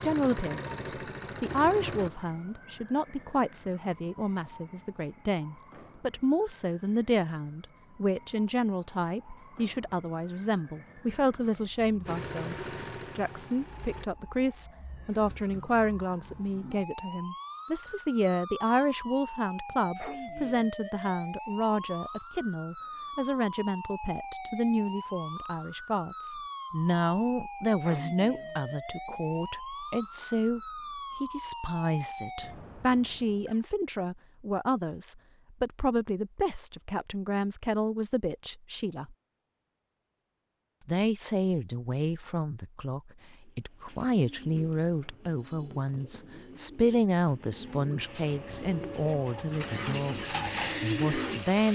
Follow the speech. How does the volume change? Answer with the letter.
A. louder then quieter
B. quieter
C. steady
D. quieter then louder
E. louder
C.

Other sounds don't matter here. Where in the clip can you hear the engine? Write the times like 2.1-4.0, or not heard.
0.0-2.1, 12.1-14.1, 48.5-51.6.